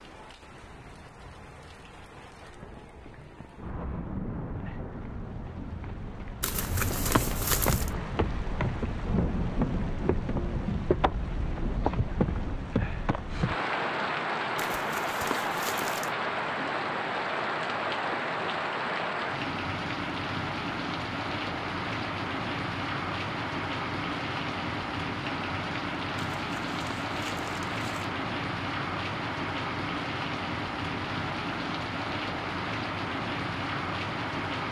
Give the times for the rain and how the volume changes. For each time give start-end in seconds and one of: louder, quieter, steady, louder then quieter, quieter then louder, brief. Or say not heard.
0.0-34.6 louder.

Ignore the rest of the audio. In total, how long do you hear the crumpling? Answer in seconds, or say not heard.
5 s.